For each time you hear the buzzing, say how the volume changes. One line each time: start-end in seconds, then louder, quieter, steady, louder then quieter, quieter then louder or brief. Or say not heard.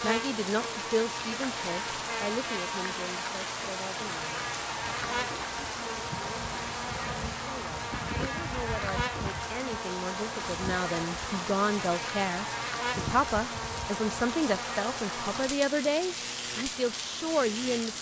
0.0-17.9 steady.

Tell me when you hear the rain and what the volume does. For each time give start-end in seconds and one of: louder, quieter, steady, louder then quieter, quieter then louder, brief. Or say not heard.
0.0-17.9 steady.